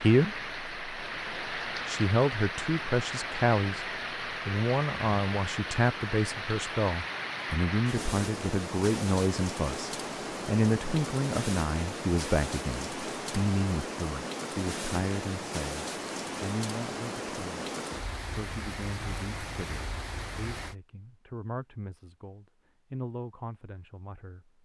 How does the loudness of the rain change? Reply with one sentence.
The loudness of the rain stays about the same.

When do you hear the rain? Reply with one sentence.
You can hear the rain from 0.0 to 20.8 s.